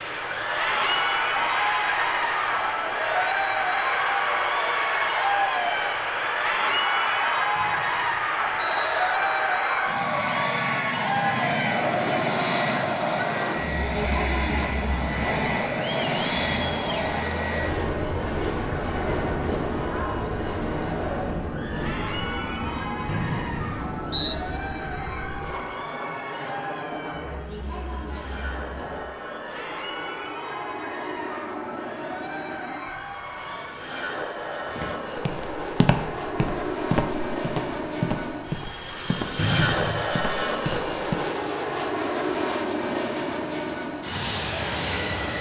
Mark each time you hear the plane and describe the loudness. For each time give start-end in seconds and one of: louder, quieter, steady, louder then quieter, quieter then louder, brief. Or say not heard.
0.0-45.3 quieter then louder.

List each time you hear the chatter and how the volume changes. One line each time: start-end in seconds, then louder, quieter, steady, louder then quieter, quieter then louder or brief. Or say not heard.
0.1-33.9 quieter.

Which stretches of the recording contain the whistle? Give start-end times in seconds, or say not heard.
7.5-9.2, 23.1-24.4, 39.4-40.1.